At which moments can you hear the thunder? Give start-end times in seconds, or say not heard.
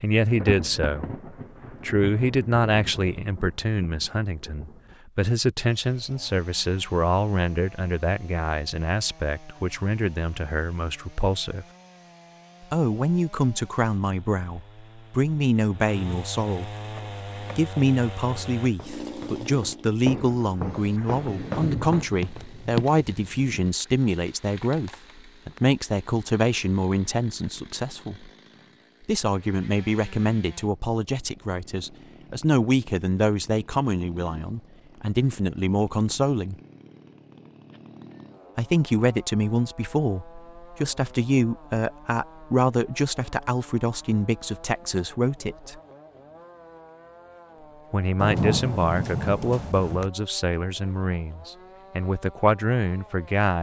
0.3-4.8, 21.2-23.8, 48.1-50.1.